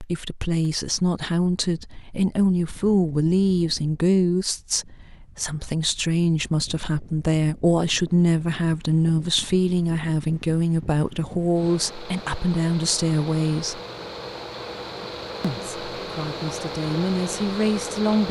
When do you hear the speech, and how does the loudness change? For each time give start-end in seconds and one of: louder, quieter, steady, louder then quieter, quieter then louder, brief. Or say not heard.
0.0-13.8 steady
15.4-18.2 brief.